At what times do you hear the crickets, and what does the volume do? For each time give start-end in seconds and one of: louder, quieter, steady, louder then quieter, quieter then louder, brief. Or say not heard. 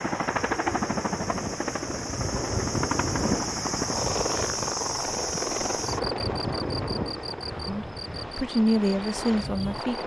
0.0-9.8 louder then quieter.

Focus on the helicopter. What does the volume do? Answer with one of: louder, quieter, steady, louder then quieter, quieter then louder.
quieter.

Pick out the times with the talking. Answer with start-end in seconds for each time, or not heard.
7.7-10.0.